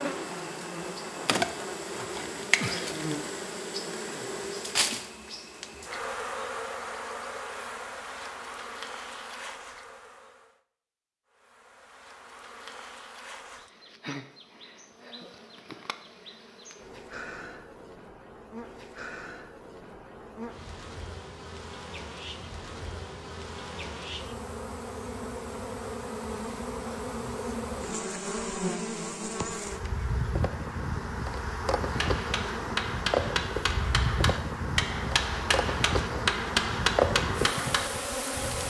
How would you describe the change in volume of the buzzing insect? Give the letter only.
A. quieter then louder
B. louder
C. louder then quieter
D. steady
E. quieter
A.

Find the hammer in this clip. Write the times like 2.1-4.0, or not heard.
31.9-37.9.